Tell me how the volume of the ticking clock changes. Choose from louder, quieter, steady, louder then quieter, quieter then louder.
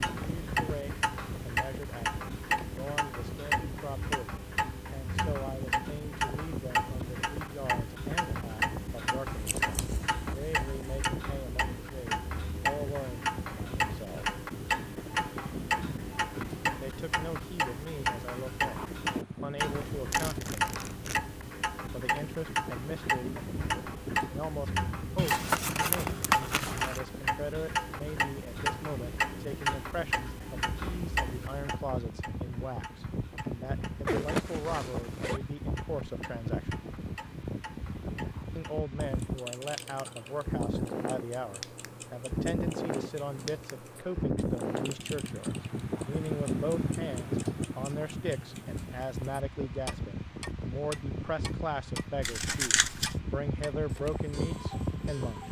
quieter.